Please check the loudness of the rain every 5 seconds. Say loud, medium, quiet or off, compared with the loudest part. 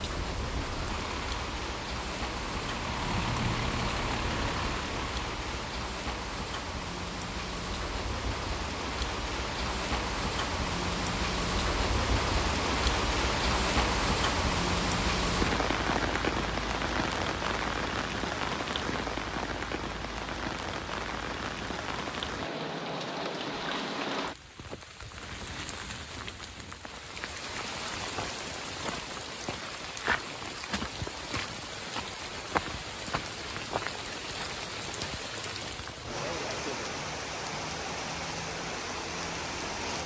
medium, medium, loud, loud, medium, medium, medium, medium.